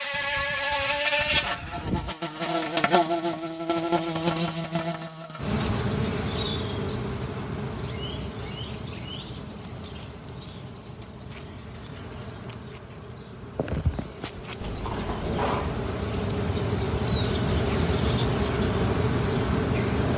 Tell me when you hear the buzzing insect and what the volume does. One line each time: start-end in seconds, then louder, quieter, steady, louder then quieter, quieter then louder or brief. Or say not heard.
0.0-20.1 quieter then louder.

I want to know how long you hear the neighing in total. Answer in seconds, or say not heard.
3 s.